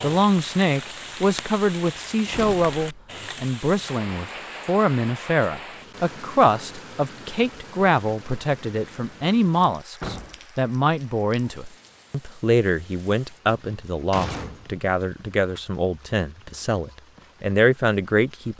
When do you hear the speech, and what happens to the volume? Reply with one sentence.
You can hear the speech from 0.0 to 18.5 s, at a steady volume.